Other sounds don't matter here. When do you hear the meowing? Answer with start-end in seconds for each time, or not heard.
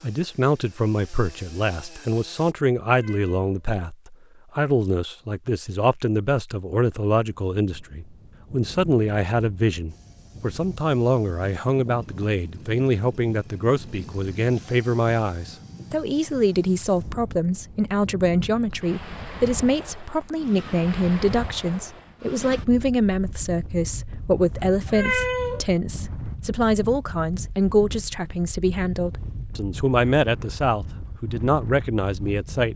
2.9-3.5, 24.9-25.6.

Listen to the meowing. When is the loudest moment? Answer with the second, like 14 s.
25 s.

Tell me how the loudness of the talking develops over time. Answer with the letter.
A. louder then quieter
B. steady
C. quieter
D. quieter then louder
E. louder
B.